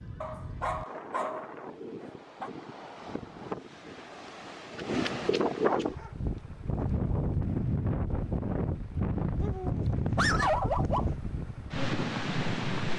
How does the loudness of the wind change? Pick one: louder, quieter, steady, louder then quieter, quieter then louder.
louder.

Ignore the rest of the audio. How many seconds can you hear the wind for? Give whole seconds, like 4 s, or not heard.
13 s.